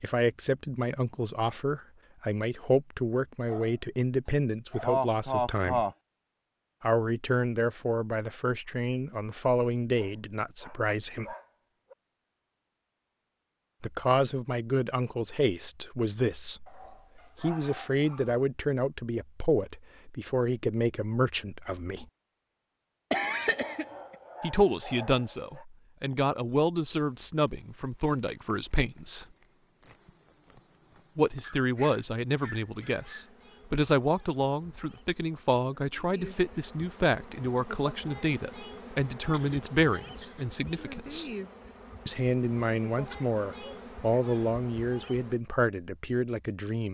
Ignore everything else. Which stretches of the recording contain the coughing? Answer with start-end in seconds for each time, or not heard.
4.8-6.0, 23.1-24.1, 39.3-40.5.